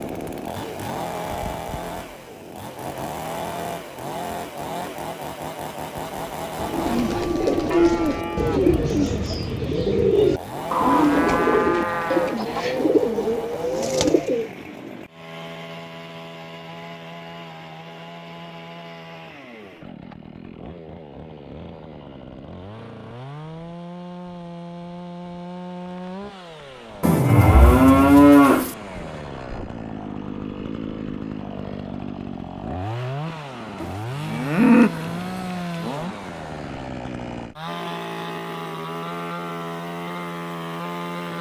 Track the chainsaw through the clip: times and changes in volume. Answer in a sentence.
You can hear the chainsaw from 0.0 to 41.3 s, getting quieter then louder.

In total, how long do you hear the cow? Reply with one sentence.
You can hear the cow for 8 seconds altogether.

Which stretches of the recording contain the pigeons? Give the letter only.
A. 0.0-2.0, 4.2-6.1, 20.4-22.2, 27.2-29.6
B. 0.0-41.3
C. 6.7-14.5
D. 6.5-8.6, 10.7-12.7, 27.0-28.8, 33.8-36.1
C.